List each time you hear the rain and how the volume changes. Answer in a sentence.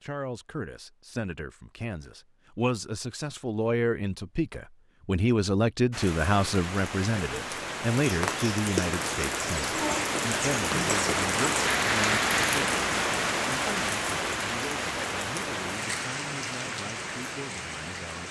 The rain can be heard from 5.9 to 18.2 s, getting louder then quieter.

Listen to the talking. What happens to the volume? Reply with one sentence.
The loudness of the talking goes up, then down.